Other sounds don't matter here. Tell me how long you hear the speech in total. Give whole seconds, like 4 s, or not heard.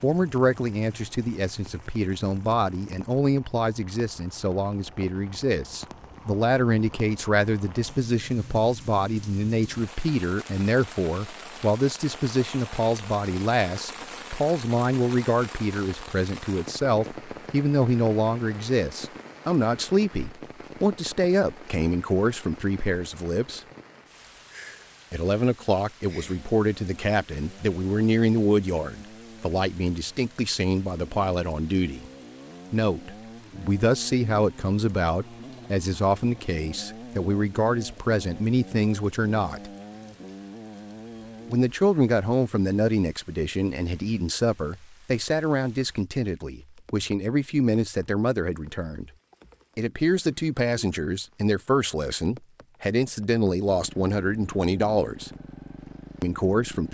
51 s.